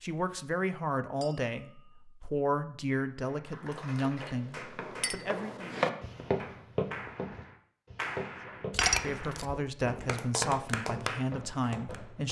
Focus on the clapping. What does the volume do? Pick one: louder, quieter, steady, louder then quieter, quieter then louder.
louder.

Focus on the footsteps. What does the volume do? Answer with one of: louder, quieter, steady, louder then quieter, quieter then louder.
quieter.